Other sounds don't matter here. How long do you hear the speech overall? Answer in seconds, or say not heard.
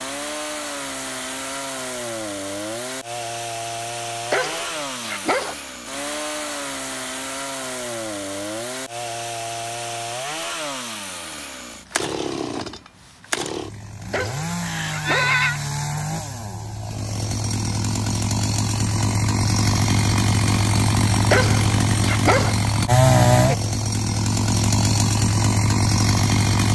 not heard.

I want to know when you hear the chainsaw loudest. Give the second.
23 s.